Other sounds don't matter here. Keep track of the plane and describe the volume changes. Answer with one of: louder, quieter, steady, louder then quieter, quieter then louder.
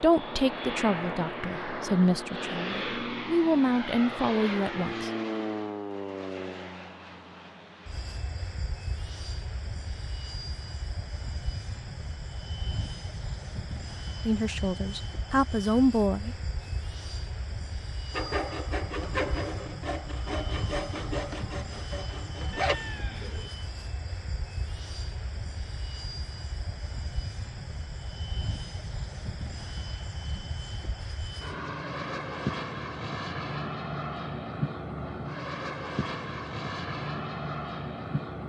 quieter then louder.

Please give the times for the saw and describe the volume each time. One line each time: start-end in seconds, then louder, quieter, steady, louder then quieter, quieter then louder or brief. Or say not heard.
18.1-22.8 quieter.